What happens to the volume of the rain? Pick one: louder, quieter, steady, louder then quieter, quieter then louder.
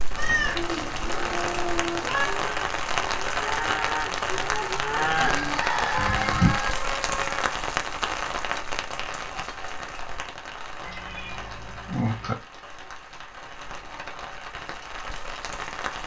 quieter.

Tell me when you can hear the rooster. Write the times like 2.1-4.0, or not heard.
5.2-6.7.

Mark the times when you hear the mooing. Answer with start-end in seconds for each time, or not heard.
0.6-6.6.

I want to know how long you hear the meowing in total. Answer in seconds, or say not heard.
5 s.